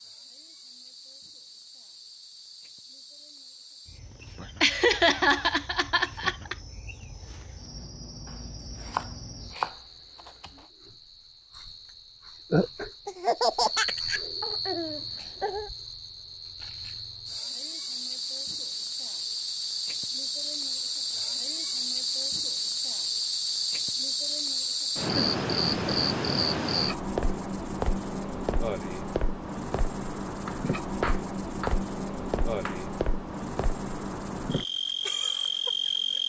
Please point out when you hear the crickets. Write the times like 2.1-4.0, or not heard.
0.0-36.2.